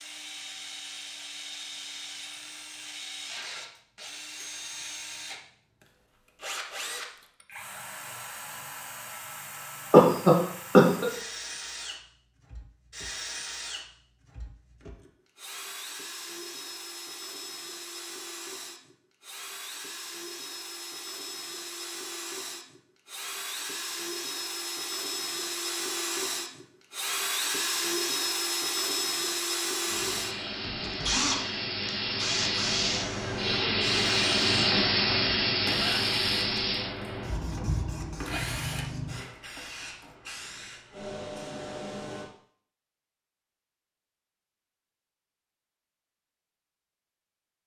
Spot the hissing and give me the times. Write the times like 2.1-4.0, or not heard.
29.9-42.3.